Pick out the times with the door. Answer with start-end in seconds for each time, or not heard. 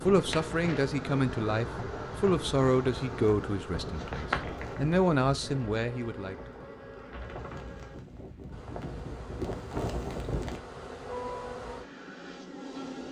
not heard.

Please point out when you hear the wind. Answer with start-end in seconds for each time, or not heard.
0.0-10.6.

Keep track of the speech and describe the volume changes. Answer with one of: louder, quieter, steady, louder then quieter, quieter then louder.
quieter then louder.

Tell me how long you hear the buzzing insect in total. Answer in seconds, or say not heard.
13 s.